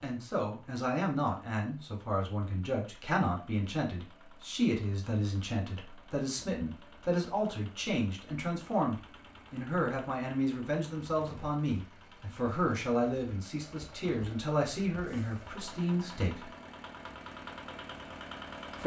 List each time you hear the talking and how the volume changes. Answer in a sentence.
You can hear the talking from 0.0 to 16.5 s, at a steady volume.